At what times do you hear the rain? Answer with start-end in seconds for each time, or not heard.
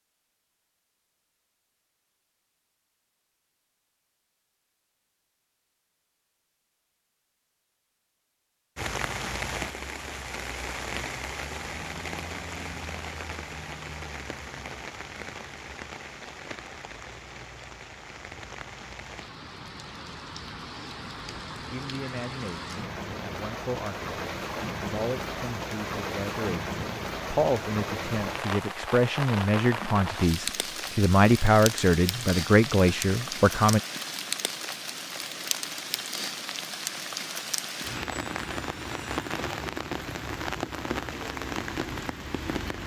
8.8-42.8.